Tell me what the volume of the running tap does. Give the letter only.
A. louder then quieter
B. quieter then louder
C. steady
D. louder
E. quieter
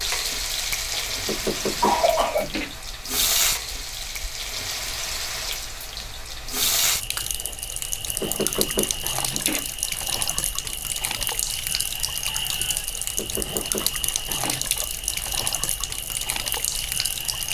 C.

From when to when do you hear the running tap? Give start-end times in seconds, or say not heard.
0.0-17.4.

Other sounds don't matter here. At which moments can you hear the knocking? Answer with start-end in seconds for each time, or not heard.
1.2-2.8, 8.2-9.7, 13.2-14.7.